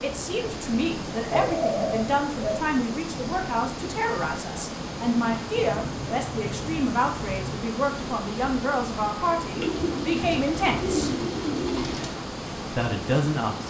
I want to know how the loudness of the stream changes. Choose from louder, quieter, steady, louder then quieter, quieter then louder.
steady.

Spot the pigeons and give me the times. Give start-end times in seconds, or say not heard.
1.3-2.6, 5.5-7.6, 9.6-12.1.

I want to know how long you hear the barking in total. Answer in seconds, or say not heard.
not heard.